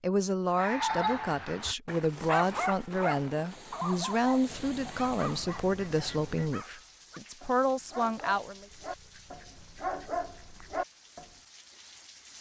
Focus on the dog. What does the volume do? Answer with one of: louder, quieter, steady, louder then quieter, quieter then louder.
quieter then louder.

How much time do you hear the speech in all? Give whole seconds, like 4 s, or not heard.
9 s.